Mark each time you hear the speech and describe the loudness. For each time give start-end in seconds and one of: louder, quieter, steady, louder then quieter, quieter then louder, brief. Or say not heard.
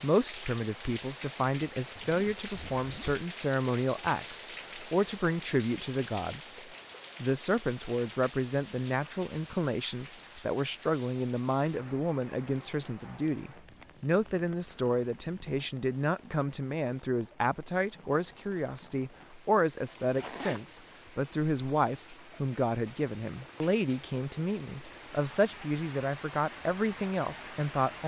0.0-6.5 steady
7.2-28.0 steady.